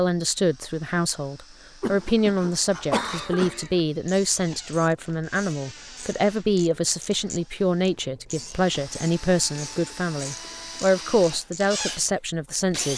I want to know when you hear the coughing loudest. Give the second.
3 s.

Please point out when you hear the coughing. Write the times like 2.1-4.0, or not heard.
1.8-3.8.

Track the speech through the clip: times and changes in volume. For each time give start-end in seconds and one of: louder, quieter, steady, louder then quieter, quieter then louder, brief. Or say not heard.
0.0-12.9 steady.